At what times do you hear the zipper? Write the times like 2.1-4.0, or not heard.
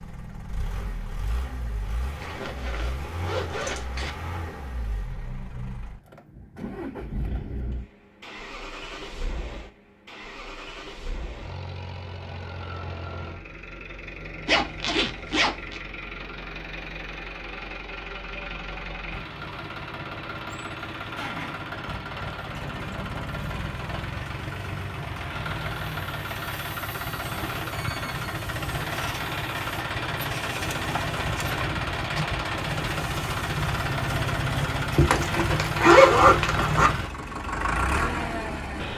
2.2-4.2, 14.4-15.8, 35.0-36.9.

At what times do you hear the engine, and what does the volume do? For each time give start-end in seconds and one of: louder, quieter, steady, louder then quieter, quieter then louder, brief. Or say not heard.
0.0-38.9 louder.